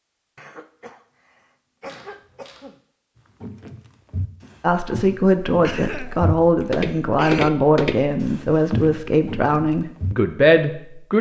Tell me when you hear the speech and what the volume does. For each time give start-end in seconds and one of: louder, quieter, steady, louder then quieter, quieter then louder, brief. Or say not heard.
4.6-11.1 steady.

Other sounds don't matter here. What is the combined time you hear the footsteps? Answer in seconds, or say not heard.
7 s.